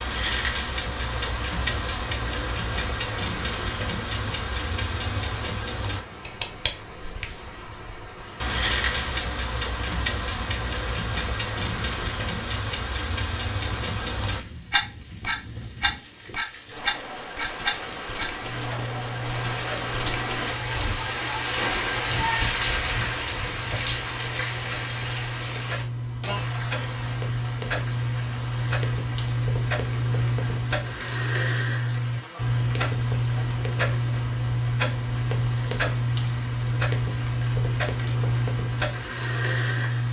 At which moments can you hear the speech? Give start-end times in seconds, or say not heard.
not heard.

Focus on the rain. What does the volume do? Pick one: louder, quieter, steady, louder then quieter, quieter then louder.
louder then quieter.